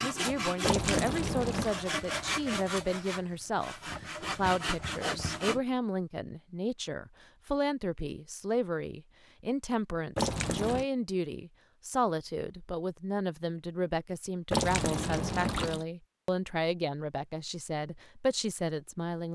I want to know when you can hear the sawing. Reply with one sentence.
You can hear the sawing from 0.0 to 5.6 s.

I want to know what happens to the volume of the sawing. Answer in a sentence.
The loudness of the sawing goes down, then up.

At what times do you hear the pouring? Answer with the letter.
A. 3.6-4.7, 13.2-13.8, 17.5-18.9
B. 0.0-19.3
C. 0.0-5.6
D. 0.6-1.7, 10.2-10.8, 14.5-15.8
D.